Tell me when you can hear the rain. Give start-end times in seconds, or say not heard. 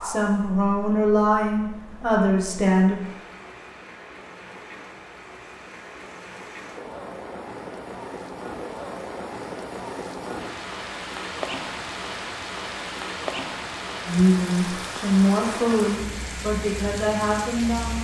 0.0-17.9.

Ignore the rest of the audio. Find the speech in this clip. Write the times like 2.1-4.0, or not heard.
0.0-3.0, 14.1-17.9.